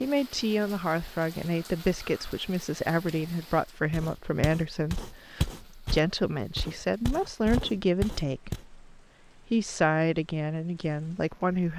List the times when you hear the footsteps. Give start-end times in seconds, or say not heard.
3.9-8.7.